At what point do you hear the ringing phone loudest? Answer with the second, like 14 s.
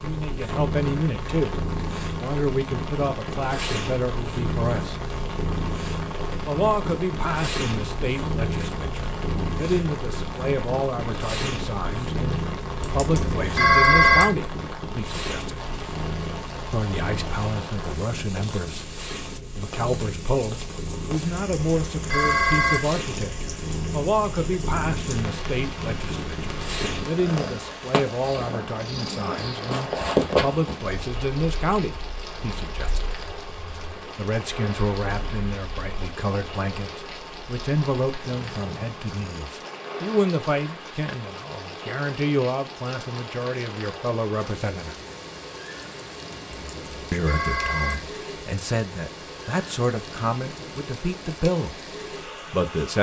14 s.